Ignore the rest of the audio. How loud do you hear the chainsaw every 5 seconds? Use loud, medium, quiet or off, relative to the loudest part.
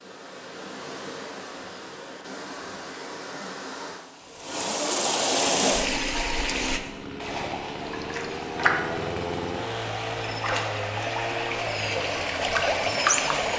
off, loud, loud.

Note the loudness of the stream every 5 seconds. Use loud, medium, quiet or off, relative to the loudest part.
medium, loud, loud.